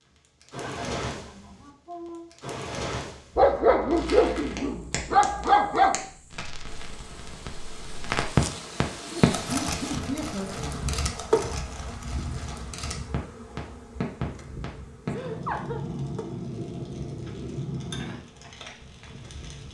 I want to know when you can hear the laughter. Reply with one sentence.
The laughter can be heard from 0.5 to 2.3 s, from 9.1 to 10.9 s and from 15.1 to 15.8 s.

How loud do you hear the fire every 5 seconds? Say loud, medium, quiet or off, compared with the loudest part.
medium, loud, medium, medium.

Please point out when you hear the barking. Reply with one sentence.
You can hear the barking from 3.4 to 6.0 s.